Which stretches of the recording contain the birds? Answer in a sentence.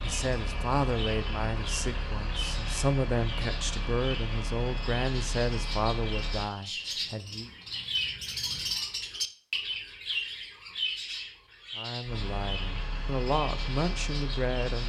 You can hear the birds from 0.0 to 14.8 s.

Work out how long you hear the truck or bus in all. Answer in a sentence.
You can hear the truck or bus for 9 seconds altogether.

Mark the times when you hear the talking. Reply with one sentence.
The talking can be heard from 0.0 to 7.5 s and from 11.8 to 14.8 s.